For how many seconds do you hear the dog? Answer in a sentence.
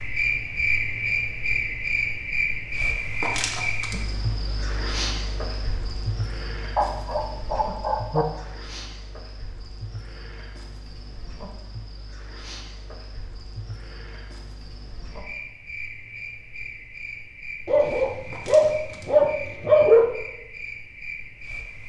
The dog can be heard for 4 seconds in total.